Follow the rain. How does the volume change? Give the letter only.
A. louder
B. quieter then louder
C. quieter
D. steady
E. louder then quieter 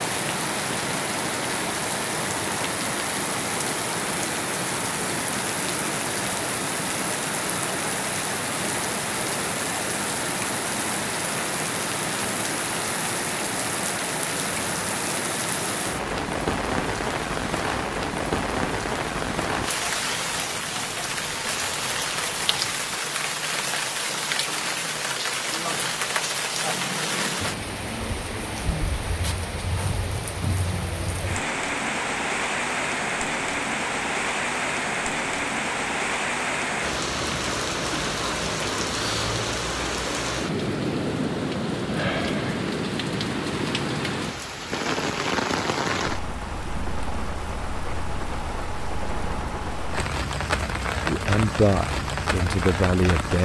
D.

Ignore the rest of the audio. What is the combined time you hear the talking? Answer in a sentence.
The talking can be heard for 2 seconds in total.